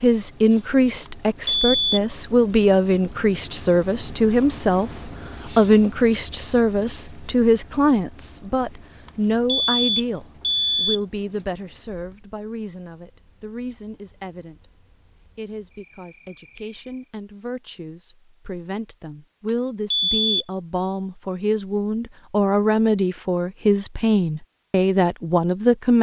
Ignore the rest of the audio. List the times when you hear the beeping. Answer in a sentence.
You can hear the beeping from 1.1 to 2.0 s, from 9.1 to 11.0 s and from 19.4 to 20.4 s.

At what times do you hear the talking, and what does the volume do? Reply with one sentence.
You can hear the talking from 0.0 to 25.9 s, getting quieter then louder.